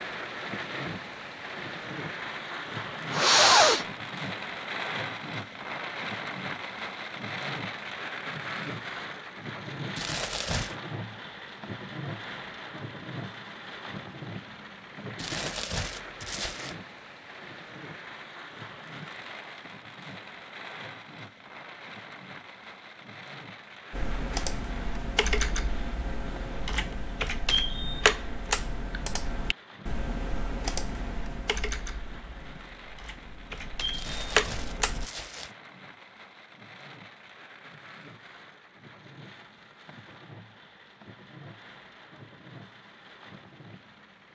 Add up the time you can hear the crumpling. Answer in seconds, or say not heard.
4 s.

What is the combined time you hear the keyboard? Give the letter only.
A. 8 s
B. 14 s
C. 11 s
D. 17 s
C.